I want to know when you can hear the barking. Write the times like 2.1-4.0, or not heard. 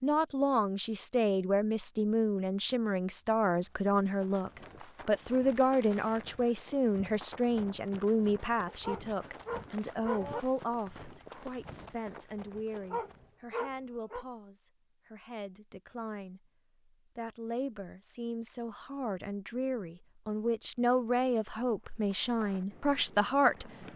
8.7-10.4, 12.7-14.2.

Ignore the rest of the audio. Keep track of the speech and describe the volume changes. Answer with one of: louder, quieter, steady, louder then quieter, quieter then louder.
quieter then louder.